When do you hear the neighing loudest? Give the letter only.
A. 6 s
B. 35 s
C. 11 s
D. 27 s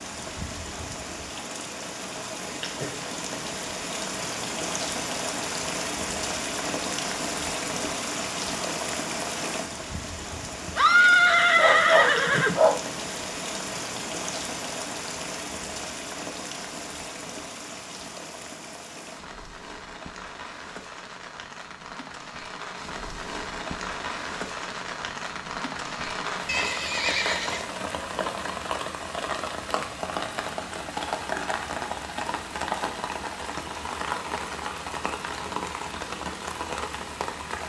C.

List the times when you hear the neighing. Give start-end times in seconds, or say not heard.
10.7-12.6, 26.4-27.6.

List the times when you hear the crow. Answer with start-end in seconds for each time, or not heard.
not heard.